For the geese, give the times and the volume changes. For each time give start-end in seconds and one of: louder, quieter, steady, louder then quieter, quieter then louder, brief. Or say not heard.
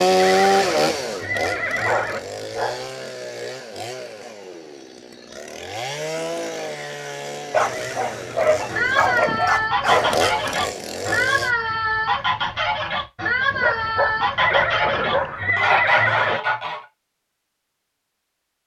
8.7-16.8 steady.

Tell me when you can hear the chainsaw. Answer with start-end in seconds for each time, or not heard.
0.0-11.5.